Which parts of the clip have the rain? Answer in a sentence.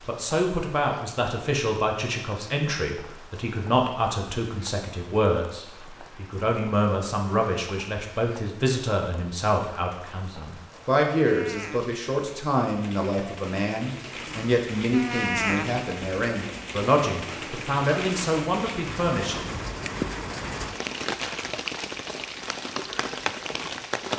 You can hear the rain from 0.0 to 24.1 s.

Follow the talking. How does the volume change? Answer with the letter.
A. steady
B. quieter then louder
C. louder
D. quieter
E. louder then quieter
A.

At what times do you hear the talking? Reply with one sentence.
You can hear the talking from 0.1 to 19.6 s.